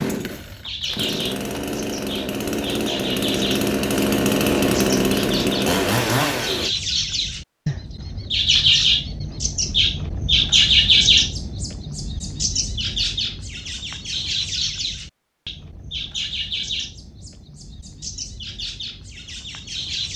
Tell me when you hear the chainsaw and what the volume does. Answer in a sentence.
You can hear the chainsaw from 0.0 to 6.8 s, getting louder.